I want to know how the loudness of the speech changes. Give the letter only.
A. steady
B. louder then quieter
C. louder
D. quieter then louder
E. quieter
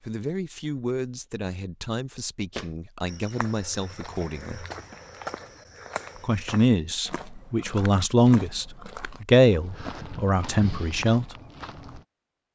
C.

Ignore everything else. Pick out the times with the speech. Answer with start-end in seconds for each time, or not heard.
0.1-4.7, 6.2-11.3.